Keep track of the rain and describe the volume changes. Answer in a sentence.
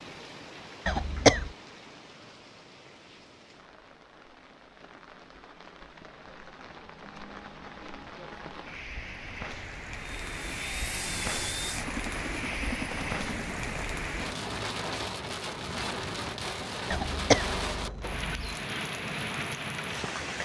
The volume of the rain goes up.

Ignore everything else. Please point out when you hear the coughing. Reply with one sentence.
The coughing can be heard from 0.8 to 1.5 s and from 16.9 to 18.6 s.